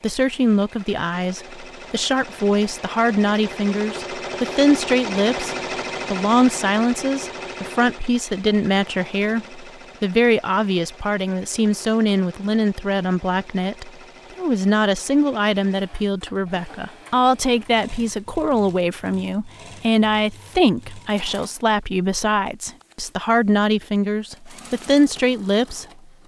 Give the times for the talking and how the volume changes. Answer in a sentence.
The talking can be heard from 0.0 to 25.9 s, at a steady volume.